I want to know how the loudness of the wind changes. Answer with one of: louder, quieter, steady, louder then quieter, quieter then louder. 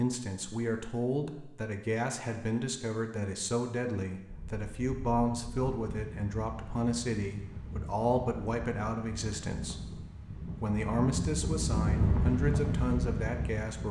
louder.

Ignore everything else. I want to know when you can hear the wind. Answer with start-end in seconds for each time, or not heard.
4.2-13.8.